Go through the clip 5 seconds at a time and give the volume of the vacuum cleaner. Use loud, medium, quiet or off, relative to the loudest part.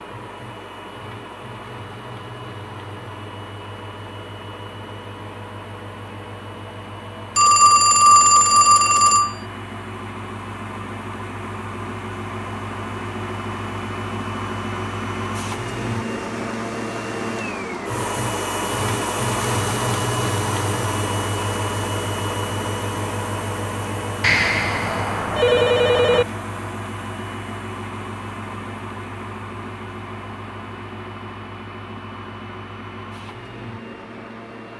medium, medium, medium, loud, loud, medium, medium.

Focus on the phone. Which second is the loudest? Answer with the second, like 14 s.
8 s.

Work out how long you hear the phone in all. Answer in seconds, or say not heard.
4 s.